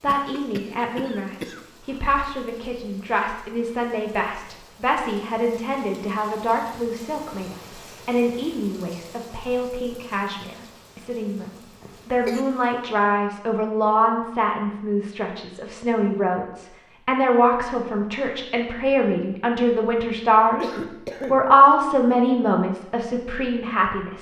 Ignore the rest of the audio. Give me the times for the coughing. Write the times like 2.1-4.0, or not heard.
0.1-2.0, 11.8-12.4, 20.6-21.4.